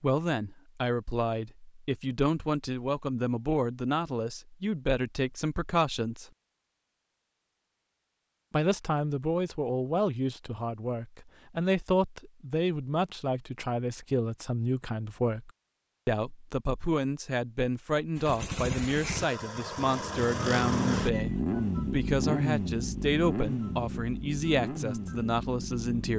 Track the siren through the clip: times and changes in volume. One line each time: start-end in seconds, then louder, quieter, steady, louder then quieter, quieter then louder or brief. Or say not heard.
not heard.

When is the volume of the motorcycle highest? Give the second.
21 s.